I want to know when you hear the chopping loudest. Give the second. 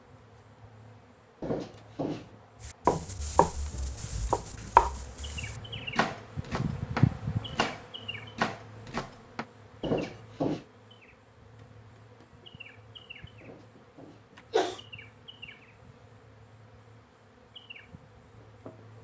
5 s.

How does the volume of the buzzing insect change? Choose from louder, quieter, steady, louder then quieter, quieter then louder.
louder then quieter.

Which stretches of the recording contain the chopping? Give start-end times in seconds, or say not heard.
2.6-9.4.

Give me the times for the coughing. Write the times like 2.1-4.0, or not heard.
1.4-2.4, 9.8-10.7, 13.4-14.8.